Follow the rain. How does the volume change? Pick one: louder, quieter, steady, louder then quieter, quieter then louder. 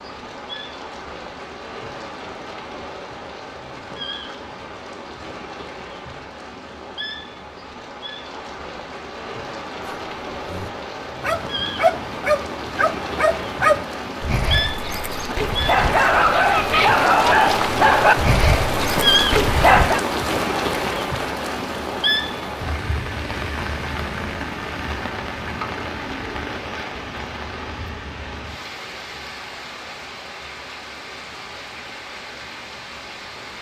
louder then quieter.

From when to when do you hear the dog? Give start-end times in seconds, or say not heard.
9.8-20.1.